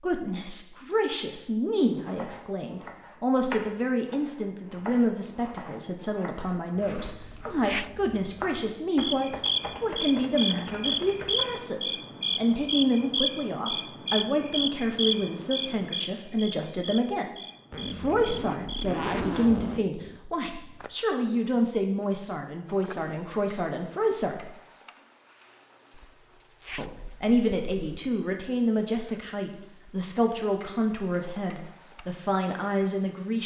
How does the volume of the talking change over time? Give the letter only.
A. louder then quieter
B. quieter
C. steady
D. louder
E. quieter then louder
C.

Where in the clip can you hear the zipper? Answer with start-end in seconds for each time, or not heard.
7.0-7.9, 17.7-19.9, 25.9-27.9.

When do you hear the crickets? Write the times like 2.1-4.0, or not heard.
8.9-33.4.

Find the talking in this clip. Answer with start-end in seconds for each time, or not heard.
0.0-17.3, 17.9-24.5, 26.8-33.4.